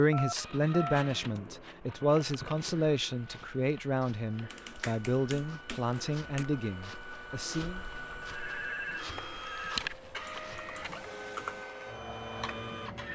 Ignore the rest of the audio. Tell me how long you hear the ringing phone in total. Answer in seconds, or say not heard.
3 s.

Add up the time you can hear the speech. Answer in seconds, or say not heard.
8 s.